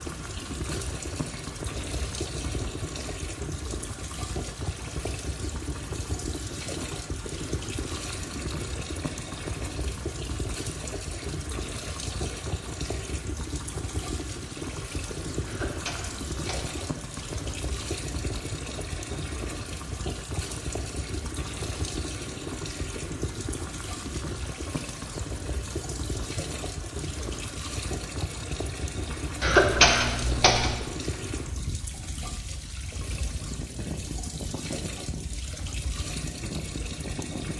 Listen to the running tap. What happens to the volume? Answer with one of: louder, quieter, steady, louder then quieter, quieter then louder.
steady.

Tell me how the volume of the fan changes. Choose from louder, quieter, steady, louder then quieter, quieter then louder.
steady.